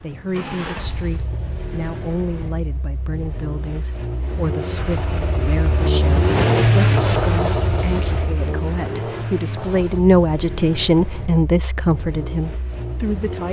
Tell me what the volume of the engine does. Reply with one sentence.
The volume of the engine goes up, then down.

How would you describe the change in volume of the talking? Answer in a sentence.
The volume of the talking goes up.